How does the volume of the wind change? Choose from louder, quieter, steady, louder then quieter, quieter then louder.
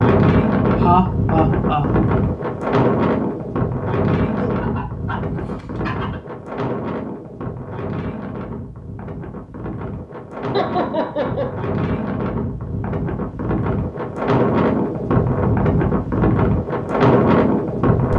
quieter then louder.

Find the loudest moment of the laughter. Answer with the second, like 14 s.
1 s.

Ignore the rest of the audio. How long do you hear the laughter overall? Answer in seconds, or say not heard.
2 s.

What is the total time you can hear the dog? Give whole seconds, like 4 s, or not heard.
2 s.